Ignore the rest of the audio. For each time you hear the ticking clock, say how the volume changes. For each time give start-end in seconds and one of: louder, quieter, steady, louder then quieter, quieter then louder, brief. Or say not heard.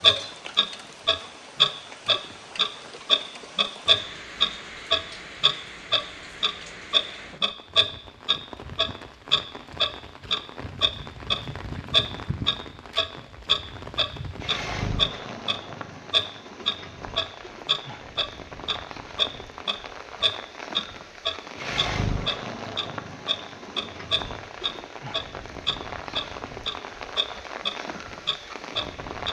0.0-29.2 quieter.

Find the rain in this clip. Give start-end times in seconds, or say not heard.
0.0-29.2.